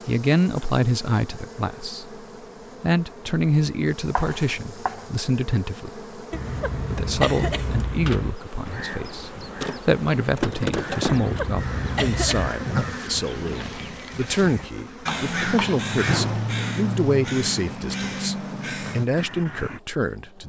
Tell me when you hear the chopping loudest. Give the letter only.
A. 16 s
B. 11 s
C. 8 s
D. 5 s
A.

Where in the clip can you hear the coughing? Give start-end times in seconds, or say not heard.
6.3-8.3, 11.1-12.5.